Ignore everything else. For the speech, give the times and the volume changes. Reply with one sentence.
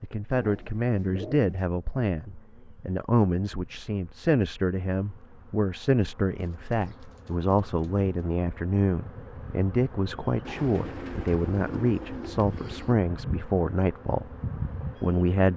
The speech can be heard from 0.0 to 14.3 s, at a steady volume; and briefly from 15.0 to 15.5 s.